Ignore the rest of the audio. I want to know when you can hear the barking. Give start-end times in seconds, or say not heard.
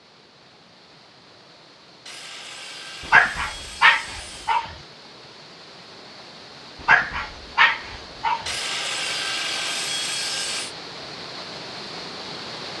3.1-4.7, 6.8-8.5.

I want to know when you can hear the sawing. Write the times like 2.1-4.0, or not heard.
2.0-4.7, 8.4-10.8.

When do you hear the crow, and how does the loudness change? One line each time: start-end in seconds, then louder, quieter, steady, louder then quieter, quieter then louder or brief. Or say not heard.
not heard.